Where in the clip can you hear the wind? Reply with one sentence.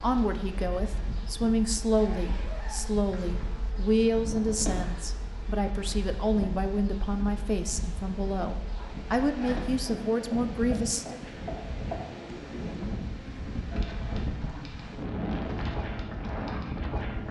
You can hear the wind from 0.0 to 17.2 s.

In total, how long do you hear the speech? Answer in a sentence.
You can hear the speech for 11 seconds altogether.